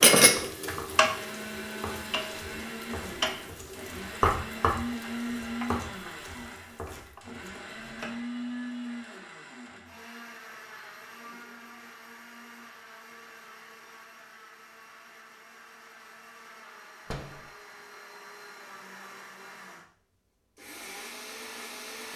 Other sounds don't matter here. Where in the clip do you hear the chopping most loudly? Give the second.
4 s.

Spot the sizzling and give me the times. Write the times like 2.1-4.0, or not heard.
0.0-7.2.